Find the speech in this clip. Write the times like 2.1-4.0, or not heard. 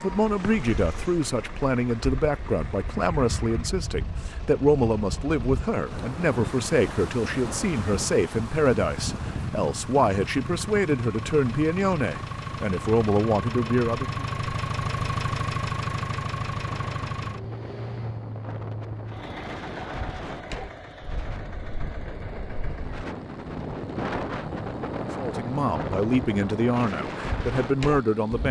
0.0-14.2, 25.1-28.4.